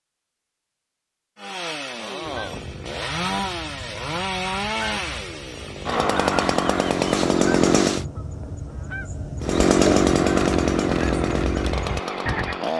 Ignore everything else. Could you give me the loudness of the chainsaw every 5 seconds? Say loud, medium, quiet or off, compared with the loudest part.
medium, loud, loud.